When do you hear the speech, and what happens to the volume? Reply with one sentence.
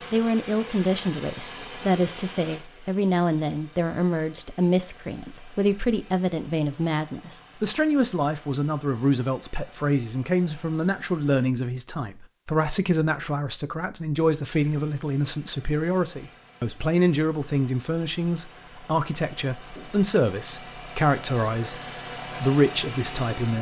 You can hear the speech from 0.1 to 21.8 s, at a steady volume; and briefly from 22.4 to 23.5 s.